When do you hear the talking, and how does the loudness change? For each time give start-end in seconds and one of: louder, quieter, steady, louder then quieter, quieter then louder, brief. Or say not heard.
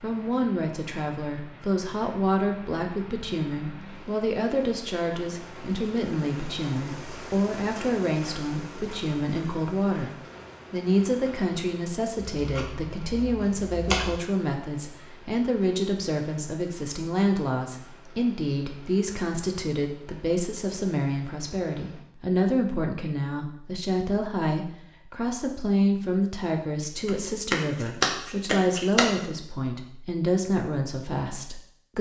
0.0-31.9 steady.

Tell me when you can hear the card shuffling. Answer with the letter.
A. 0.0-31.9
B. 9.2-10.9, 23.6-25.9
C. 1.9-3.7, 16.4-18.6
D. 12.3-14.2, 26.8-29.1
D.